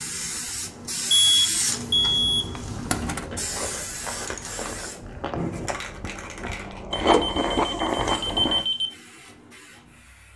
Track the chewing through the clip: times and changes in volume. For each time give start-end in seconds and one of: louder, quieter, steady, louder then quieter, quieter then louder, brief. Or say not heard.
2.5-8.7 louder.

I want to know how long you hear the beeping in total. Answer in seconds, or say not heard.
4 s.